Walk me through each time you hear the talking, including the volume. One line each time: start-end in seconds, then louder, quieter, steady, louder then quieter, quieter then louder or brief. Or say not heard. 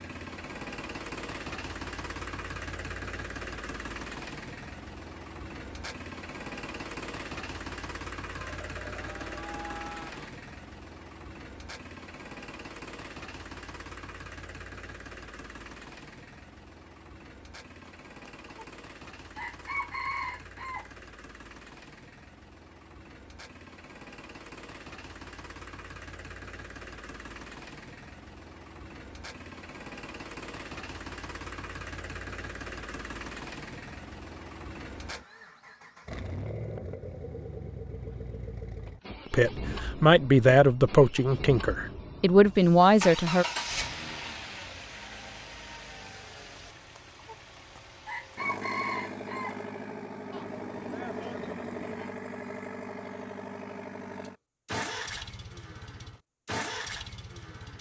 39.3-43.5 quieter then louder.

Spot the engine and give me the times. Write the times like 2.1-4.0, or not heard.
0.0-57.7.